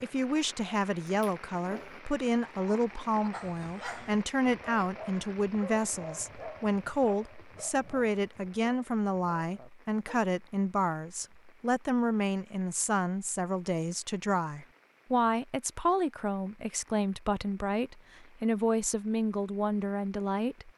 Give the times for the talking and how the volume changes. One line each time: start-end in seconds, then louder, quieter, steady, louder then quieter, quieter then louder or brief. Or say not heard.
0.0-20.7 steady.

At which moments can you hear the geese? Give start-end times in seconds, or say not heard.
not heard.